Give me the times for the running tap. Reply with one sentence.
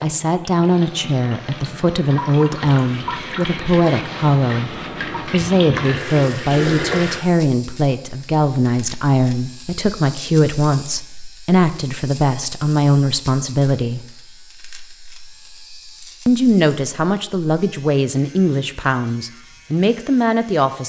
You can hear the running tap from 0.0 to 7.2 s.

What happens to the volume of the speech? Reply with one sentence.
The volume of the speech stays about the same.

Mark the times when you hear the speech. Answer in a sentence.
The speech can be heard from 0.0 to 14.1 s and from 16.2 to 20.8 s.